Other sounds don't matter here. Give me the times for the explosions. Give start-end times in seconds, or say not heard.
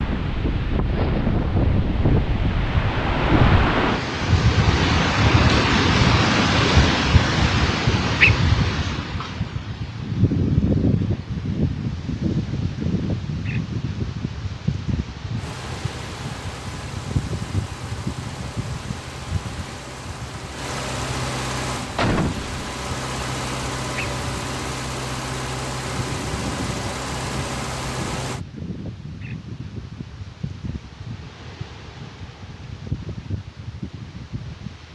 0.9-2.9, 21.9-22.6.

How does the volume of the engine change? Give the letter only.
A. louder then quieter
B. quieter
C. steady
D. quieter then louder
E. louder
E.